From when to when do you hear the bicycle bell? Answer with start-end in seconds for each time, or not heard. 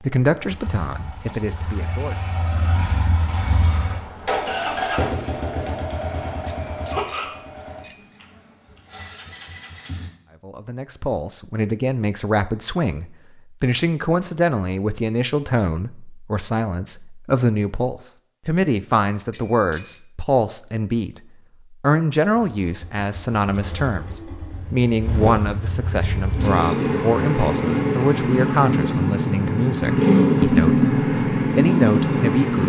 6.5-8.2, 19.3-20.0, 26.0-27.9.